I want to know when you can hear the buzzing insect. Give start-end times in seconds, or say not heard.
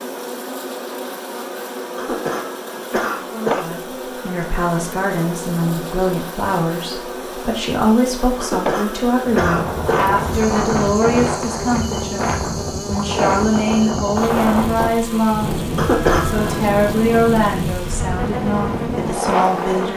0.0-19.9.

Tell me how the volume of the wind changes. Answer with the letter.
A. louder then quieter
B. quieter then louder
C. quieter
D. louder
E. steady
E.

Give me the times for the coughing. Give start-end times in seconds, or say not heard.
1.9-3.8, 8.4-10.2, 15.8-16.6.